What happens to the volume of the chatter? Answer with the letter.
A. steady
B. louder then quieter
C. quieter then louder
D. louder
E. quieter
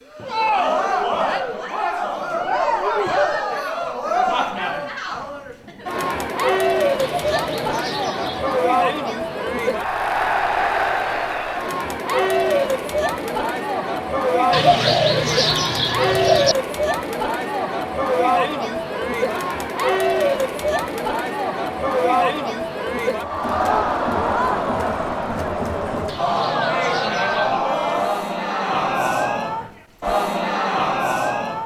A.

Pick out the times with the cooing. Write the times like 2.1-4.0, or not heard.
7.0-8.6, 14.5-16.6, 26.1-27.6.